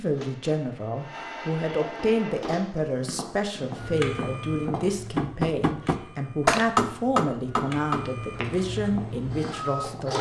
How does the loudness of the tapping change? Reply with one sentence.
The loudness of the tapping goes up, then down.